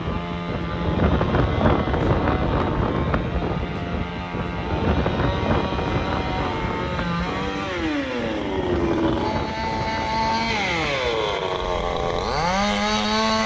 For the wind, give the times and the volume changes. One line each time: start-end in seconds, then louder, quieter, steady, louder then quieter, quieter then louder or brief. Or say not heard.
0.0-13.4 quieter.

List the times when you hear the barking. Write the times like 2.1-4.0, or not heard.
not heard.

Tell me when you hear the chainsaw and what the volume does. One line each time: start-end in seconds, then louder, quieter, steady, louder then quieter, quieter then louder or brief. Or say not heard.
0.0-13.4 louder.